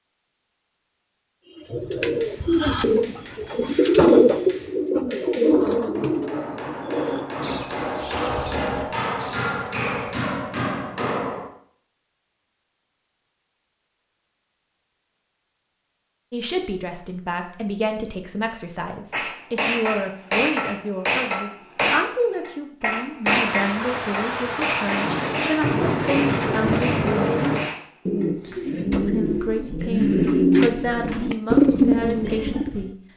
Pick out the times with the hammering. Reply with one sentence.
The hammering can be heard from 2.1 to 11.5 s and from 19.1 to 28.3 s.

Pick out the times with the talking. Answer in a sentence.
You can hear the talking from 16.3 to 27.1 s and from 28.9 to 32.9 s.